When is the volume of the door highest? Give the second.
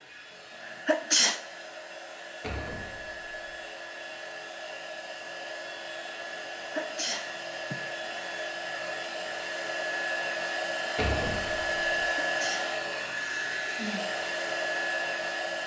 11 s.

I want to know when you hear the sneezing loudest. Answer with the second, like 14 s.
1 s.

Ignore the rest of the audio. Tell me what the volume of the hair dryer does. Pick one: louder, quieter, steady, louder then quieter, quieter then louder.
louder.